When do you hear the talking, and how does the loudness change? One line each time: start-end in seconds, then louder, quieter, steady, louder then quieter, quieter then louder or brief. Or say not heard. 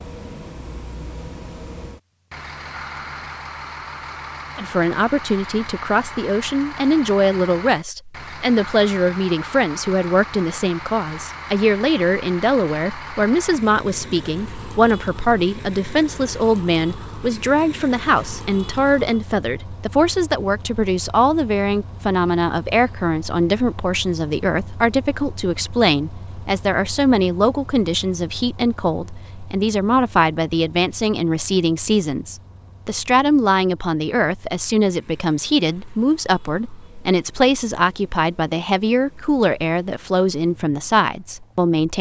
4.5-41.9 steady.